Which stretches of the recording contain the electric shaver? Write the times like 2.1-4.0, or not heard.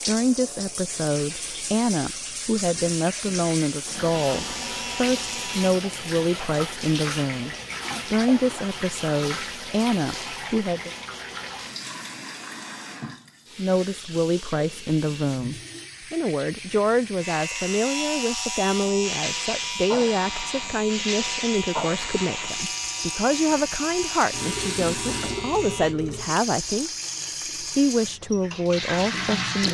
4.1-5.8, 17.2-25.9.